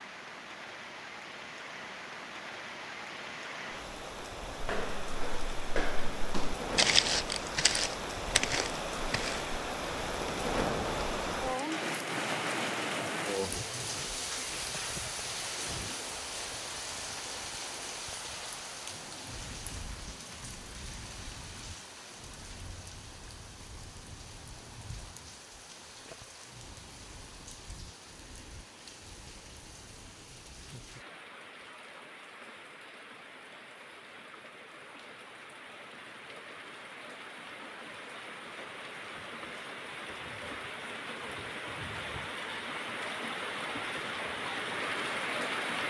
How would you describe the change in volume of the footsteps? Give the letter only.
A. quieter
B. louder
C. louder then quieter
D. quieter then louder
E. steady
C.